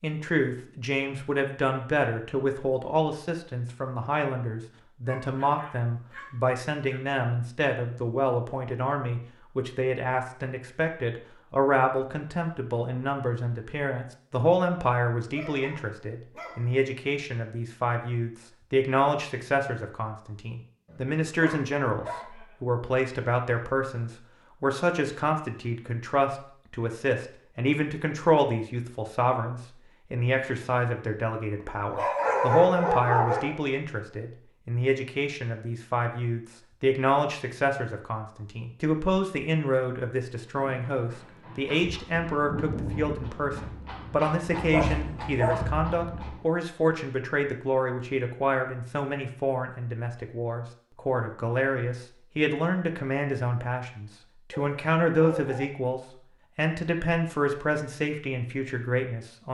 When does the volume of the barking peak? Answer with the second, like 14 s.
32 s.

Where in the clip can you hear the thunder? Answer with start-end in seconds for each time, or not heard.
42.2-46.4.